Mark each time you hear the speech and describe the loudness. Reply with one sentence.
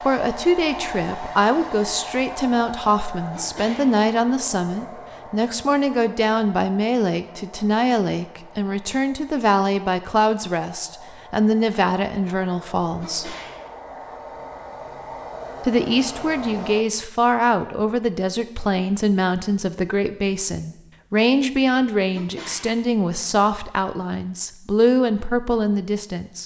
You can hear the speech from 0.0 to 13.3 s, at a steady volume; and from 15.6 to 26.4 s, at a steady volume.